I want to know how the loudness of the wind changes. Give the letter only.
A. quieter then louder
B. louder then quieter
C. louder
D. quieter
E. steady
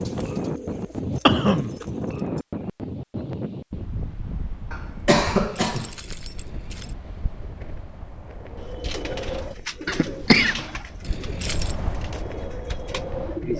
A.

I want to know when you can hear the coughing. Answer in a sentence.
You can hear the coughing from 1.2 to 1.7 s, from 4.7 to 5.9 s and from 9.8 to 10.6 s.